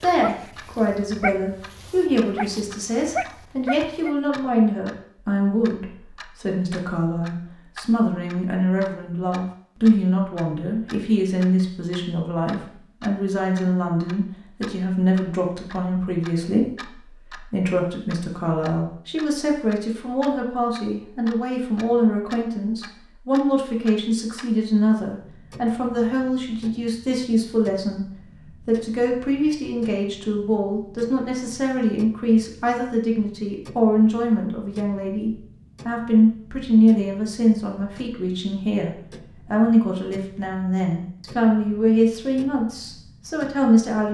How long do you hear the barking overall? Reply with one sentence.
The barking can be heard for 4 seconds in total.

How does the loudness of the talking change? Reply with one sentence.
The loudness of the talking stays about the same.